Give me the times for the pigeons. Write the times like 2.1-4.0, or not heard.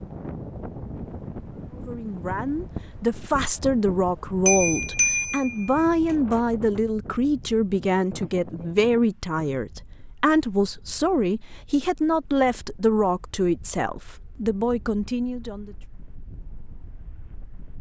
not heard.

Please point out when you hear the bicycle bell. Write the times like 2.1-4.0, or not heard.
4.5-5.8.